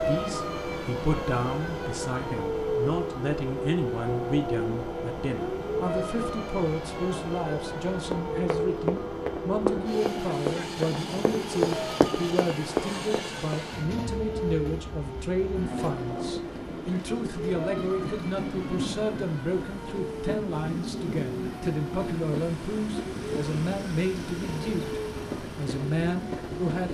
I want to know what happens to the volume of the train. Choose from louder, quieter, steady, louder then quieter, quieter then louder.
steady.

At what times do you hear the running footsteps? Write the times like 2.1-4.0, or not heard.
8.1-13.6.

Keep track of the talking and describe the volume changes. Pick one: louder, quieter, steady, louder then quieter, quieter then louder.
steady.